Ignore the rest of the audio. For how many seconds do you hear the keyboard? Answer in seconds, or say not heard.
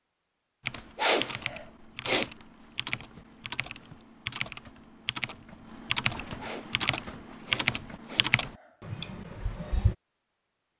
9 s.